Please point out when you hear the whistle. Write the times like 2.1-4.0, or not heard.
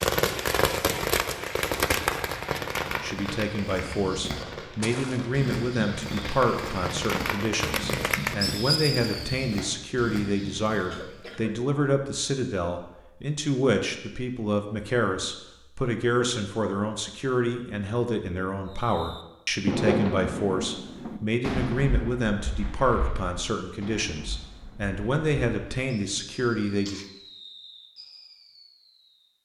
not heard.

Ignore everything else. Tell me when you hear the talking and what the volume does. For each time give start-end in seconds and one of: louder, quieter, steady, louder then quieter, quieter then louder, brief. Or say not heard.
3.0-27.0 steady.